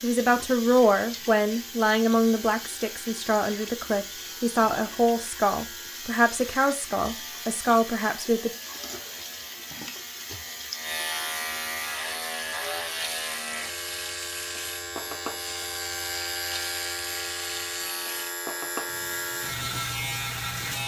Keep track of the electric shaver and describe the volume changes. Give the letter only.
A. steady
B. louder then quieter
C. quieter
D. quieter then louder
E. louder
E.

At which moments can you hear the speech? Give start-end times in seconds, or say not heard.
0.0-8.5.